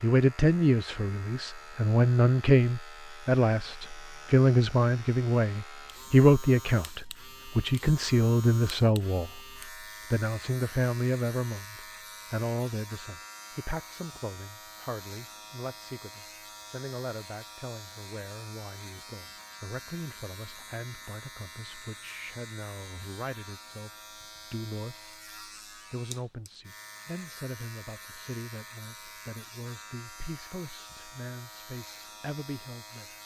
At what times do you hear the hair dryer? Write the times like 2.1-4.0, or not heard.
not heard.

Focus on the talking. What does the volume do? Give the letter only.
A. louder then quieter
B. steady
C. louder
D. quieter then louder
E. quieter
E.